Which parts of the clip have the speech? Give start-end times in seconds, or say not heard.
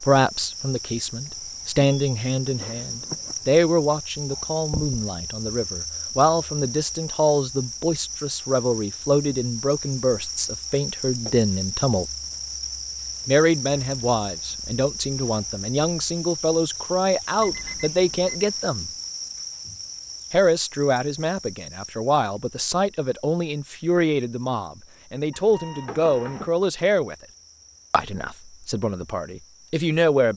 0.0-12.1, 13.2-18.9, 20.3-27.1, 27.9-30.3.